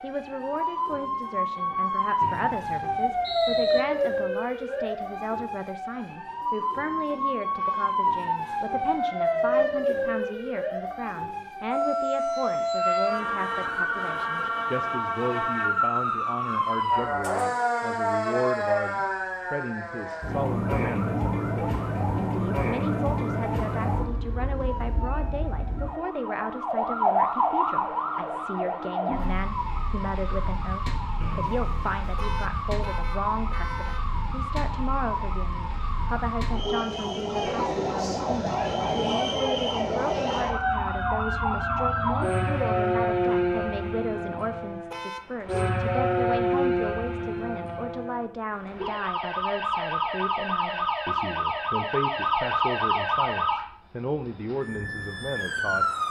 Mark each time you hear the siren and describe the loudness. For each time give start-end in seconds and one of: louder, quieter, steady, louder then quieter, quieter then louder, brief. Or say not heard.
0.0-56.0 steady.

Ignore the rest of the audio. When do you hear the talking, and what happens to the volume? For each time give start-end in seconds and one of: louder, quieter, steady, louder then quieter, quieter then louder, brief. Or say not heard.
0.0-56.0 steady.